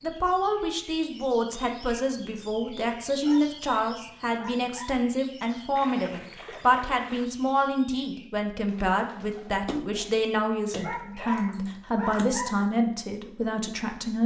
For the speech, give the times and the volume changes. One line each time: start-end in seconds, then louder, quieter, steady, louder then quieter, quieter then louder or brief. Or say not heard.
0.0-14.2 steady.